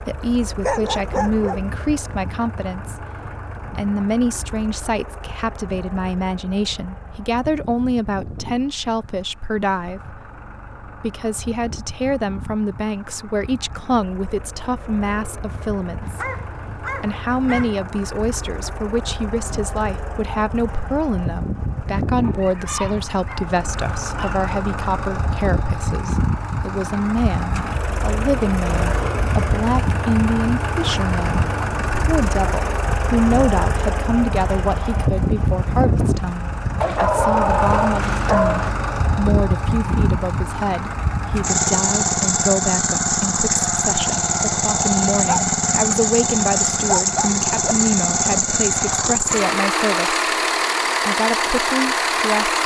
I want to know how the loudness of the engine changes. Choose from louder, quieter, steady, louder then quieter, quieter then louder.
louder.